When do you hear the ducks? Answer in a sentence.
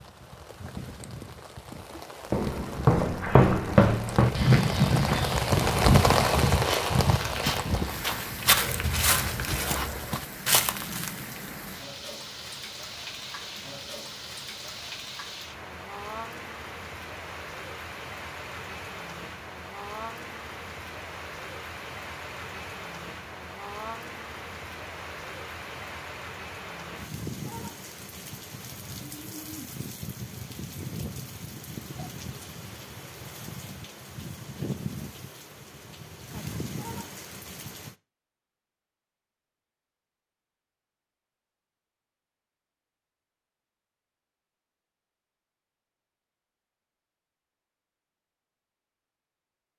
You can't hear the ducks here.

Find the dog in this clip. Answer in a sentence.
The dog can't be heard in this clip.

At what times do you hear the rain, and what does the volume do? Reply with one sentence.
You can hear the rain from 0.0 to 38.0 s, getting quieter.